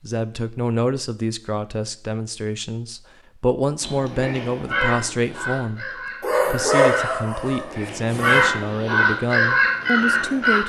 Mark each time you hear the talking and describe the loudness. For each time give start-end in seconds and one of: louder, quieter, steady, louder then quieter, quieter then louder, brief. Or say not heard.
0.0-10.6 steady.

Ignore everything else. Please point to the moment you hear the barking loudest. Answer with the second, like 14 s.
7 s.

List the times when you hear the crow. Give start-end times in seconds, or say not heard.
3.8-10.6.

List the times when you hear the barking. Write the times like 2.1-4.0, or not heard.
6.2-8.5.